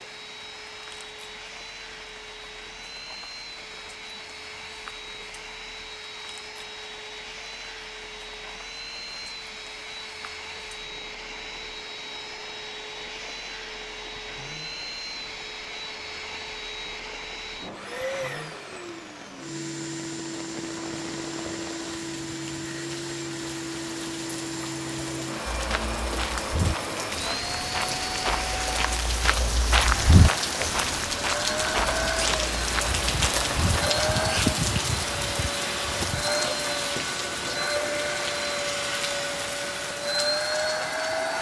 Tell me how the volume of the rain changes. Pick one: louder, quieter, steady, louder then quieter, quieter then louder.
louder.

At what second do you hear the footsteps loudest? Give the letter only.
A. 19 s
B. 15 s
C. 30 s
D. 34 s
C.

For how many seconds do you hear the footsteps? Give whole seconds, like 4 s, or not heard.
8 s.